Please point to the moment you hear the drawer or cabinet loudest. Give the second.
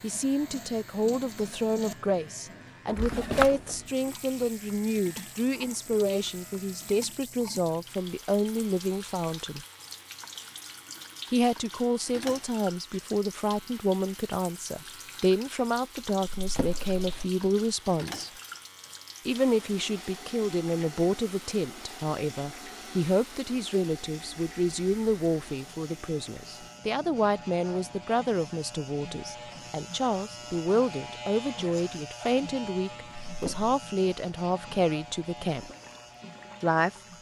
3 s.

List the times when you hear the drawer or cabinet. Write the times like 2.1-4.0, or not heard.
3.0-3.6, 16.4-17.2, 33.2-33.7.